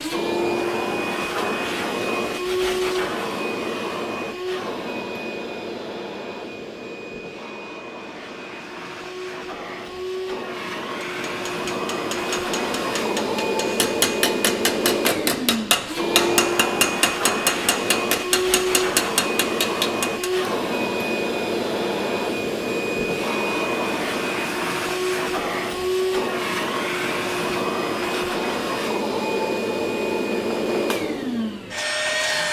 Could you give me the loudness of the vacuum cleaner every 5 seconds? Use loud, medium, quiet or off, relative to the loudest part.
loud, medium, loud, loud, loud, loud, loud.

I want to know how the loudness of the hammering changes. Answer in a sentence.
The volume of the hammering goes up.